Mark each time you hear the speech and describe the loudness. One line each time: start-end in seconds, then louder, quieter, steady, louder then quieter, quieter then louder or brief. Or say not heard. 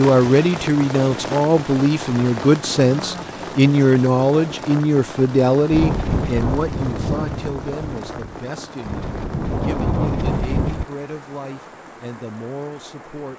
0.0-13.3 quieter.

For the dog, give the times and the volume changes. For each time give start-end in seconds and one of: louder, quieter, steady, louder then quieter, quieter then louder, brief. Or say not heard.
not heard.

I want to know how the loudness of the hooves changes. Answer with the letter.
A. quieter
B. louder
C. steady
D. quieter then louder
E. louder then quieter
D.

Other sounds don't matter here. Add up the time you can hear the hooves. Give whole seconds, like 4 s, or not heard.
5 s.